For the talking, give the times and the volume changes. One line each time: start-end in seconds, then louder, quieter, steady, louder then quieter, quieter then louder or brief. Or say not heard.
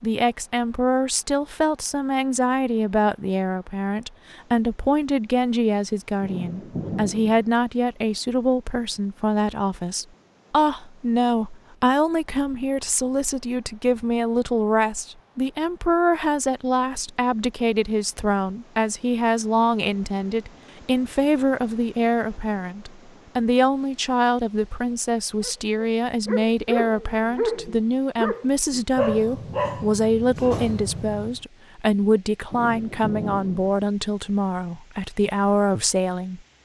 0.0-36.4 steady.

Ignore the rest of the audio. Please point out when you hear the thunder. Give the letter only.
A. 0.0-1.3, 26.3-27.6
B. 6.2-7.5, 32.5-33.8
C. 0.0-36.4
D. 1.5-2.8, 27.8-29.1
B.